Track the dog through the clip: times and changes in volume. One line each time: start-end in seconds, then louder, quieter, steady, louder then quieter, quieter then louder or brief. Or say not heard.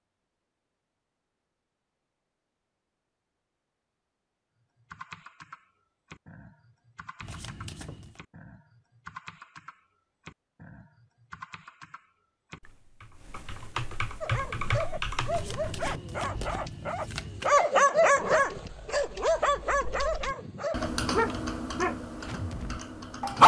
14.2-23.4 louder then quieter.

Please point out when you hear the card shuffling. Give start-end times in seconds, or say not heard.
7.2-8.2, 15.2-17.6.